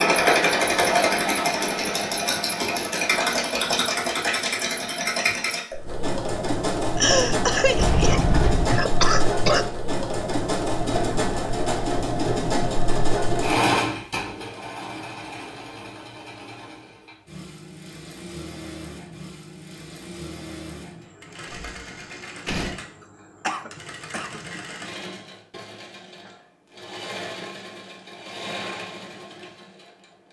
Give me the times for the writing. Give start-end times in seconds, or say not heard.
not heard.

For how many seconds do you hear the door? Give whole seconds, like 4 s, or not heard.
2 s.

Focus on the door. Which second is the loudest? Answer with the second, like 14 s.
8 s.